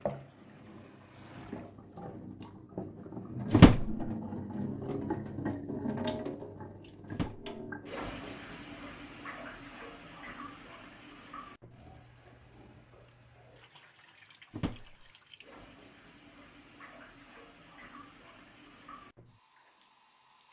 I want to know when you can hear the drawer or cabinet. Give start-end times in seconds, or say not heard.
3.5-4.1, 7.1-7.5, 14.5-15.1.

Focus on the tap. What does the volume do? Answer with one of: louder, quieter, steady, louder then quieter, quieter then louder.
quieter.